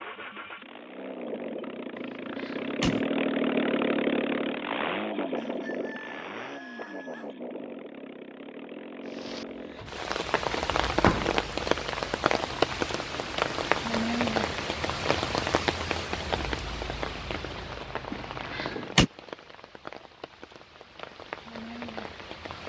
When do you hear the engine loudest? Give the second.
4 s.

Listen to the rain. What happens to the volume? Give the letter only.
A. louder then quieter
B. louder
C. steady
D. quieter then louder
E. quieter
E.